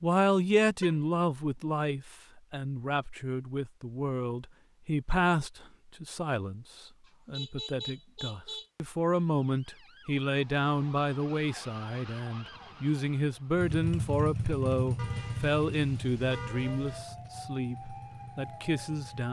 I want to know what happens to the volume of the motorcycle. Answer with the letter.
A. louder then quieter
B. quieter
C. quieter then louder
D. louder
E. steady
B.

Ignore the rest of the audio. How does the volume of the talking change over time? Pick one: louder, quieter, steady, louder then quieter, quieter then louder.
steady.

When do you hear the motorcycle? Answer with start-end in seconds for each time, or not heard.
13.6-19.2.